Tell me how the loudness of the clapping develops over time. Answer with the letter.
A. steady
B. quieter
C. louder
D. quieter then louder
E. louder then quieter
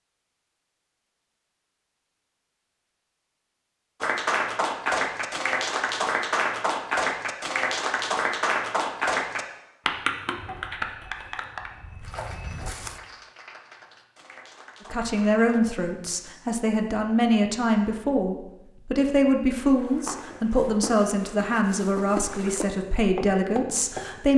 B.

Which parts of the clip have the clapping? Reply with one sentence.
You can hear the clapping from 4.0 to 15.6 s.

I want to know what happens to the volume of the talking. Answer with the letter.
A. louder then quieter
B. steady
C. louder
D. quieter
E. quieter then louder
B.